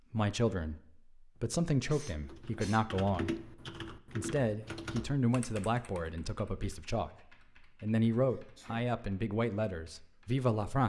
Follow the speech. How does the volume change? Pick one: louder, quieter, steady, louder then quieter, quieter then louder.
steady.